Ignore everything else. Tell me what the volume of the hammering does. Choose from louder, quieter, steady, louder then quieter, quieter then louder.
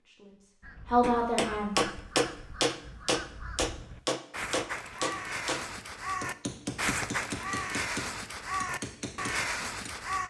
quieter.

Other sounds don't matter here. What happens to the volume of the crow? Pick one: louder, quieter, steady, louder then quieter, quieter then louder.
louder.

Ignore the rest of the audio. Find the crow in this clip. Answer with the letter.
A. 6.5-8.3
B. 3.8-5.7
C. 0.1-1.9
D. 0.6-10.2
D.